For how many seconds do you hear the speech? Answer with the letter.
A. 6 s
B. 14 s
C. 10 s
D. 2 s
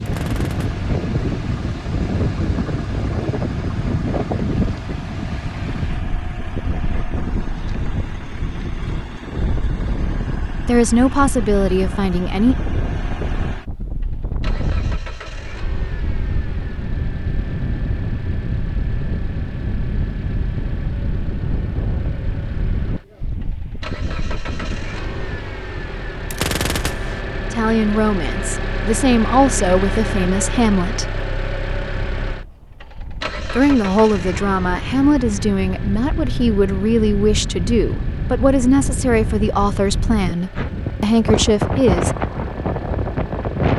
B.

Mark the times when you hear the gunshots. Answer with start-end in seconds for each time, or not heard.
0.1-0.8, 26.3-27.2.